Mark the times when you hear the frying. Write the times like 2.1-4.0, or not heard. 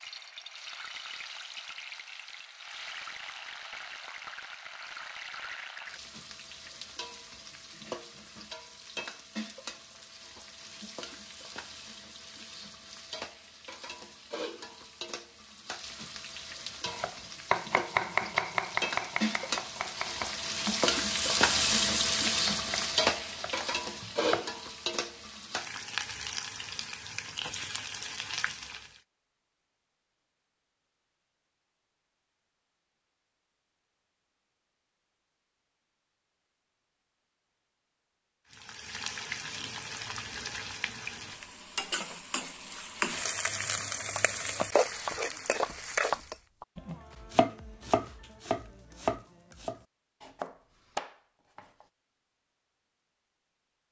0.0-29.0, 38.5-46.4.